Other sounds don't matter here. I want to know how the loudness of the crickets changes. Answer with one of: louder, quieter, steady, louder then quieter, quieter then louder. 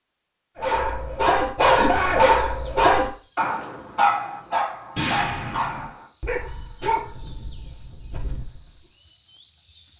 quieter then louder.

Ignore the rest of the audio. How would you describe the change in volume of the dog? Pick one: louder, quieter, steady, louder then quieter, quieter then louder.
quieter.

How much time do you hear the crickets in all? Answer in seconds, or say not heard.
8 s.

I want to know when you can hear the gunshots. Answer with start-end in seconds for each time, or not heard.
5.0-5.8.